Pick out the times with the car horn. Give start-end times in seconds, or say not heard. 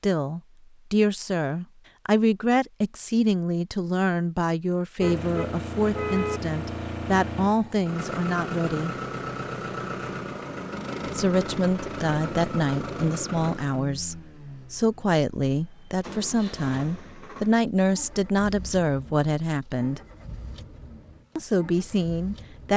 5.0-6.4.